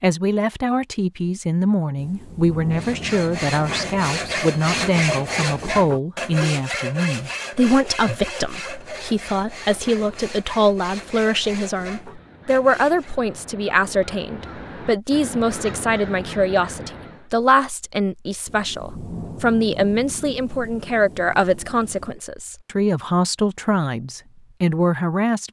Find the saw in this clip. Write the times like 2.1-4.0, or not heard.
2.7-13.2.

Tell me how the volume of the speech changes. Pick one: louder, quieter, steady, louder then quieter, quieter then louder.
steady.